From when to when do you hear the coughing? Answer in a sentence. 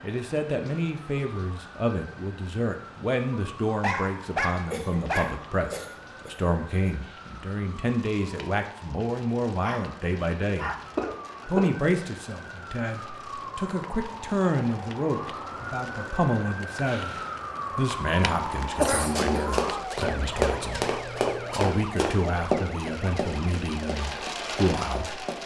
You can hear the coughing from 4.7 to 6.9 s, from 10.9 to 11.7 s and from 18.8 to 19.4 s.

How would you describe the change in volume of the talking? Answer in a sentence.
The loudness of the talking stays about the same.